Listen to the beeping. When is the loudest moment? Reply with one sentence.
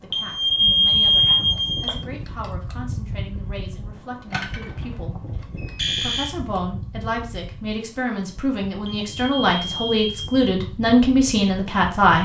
The loudest moment of the beeping is at 1 second.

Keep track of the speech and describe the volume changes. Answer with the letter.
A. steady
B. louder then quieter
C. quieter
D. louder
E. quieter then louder
D.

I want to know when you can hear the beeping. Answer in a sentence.
You can hear the beeping from 0.1 to 1.9 s, from 4.3 to 6.3 s and from 8.8 to 10.4 s.